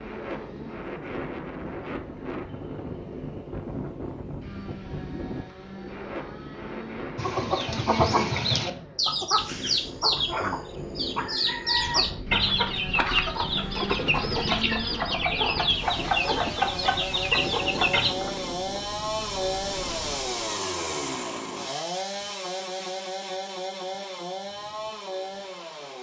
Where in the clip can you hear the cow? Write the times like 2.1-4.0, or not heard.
not heard.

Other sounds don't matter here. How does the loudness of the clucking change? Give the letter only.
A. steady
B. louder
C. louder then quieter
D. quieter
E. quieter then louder
A.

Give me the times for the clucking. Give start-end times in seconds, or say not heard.
7.2-18.1.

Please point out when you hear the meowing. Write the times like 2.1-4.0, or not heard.
not heard.